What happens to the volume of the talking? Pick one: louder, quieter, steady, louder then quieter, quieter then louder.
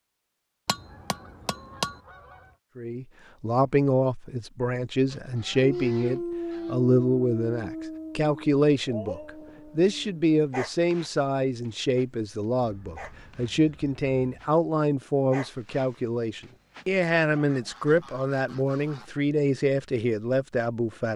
steady.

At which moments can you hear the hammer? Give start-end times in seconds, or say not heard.
0.7-2.0.